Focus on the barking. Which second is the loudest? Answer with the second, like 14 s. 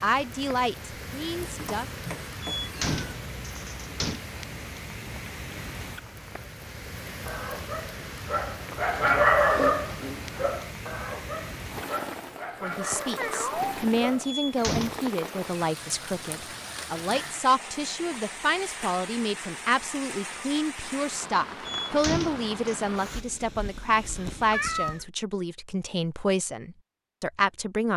9 s.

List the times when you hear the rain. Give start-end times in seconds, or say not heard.
0.0-23.2.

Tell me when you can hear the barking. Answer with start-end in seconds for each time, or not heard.
7.2-14.3.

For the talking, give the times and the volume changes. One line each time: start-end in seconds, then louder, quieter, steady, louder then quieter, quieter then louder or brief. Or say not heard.
0.0-1.9 brief
12.6-27.9 steady.